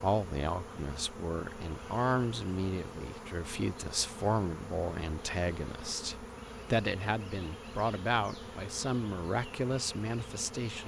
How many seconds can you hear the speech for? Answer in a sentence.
The speech can be heard for 11 seconds in total.